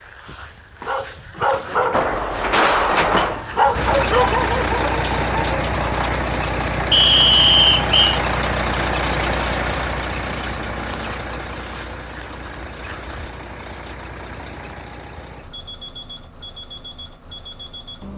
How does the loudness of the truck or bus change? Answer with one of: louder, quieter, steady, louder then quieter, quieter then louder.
quieter.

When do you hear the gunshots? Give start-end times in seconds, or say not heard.
1.9-3.5.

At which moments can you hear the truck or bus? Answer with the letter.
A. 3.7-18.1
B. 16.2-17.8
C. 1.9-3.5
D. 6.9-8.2
A.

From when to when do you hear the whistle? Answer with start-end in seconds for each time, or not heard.
6.9-8.2.